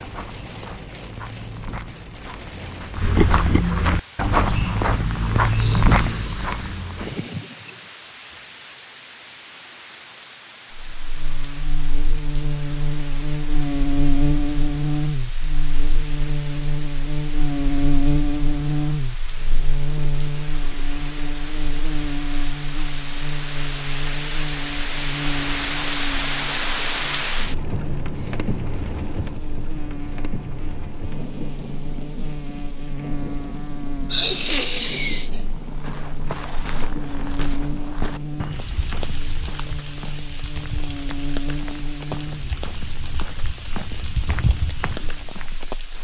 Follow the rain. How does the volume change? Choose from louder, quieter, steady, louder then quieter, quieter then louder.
louder then quieter.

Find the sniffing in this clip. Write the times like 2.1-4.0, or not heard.
5.5-7.9, 34.1-35.4.